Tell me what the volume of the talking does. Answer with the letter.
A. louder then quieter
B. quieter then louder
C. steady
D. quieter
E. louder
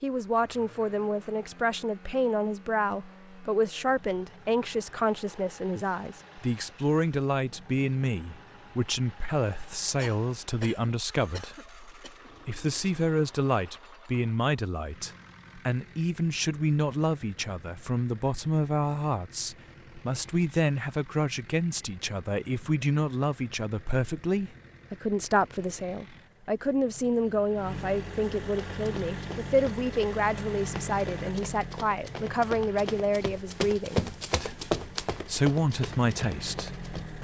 C.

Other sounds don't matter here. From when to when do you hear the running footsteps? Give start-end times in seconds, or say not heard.
28.8-37.1.